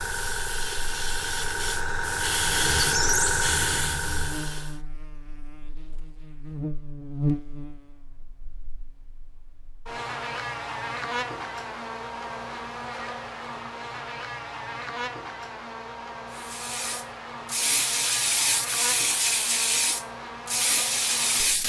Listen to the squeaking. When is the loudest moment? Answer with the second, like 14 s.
3 s.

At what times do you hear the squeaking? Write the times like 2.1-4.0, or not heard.
2.5-4.3.